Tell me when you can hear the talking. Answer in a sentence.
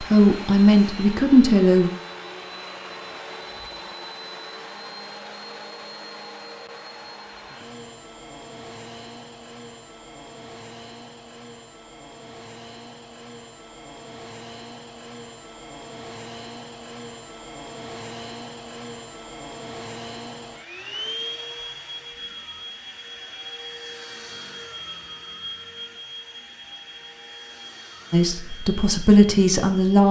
You can hear the talking from 0.0 to 1.9 s and from 28.1 to 30.0 s.